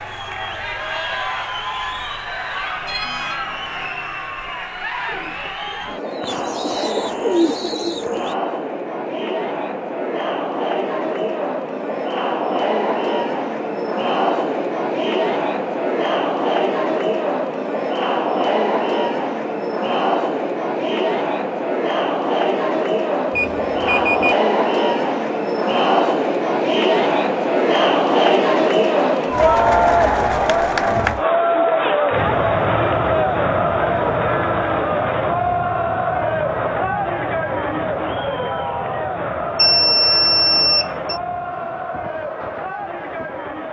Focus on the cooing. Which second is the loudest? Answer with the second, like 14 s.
7 s.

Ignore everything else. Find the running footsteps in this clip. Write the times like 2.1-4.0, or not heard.
not heard.